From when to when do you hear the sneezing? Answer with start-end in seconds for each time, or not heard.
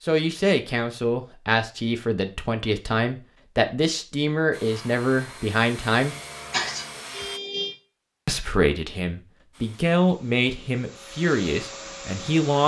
6.5-7.8.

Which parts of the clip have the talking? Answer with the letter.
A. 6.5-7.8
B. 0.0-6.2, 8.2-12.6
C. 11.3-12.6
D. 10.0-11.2
B.